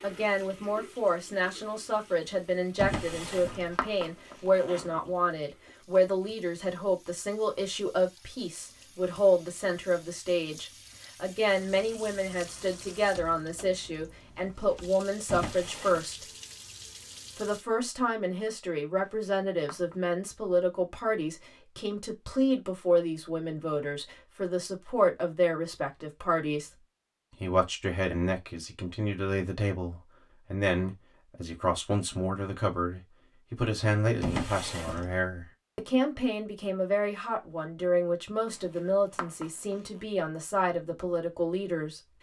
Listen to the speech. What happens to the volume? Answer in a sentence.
The volume of the speech stays about the same.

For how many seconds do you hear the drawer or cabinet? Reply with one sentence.
You can hear the drawer or cabinet for 3 seconds altogether.